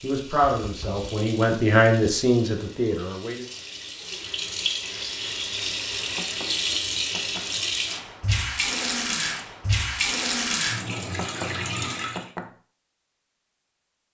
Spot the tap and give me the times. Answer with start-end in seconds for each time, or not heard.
0.0-12.3.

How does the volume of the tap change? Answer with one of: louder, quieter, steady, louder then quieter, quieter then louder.
louder.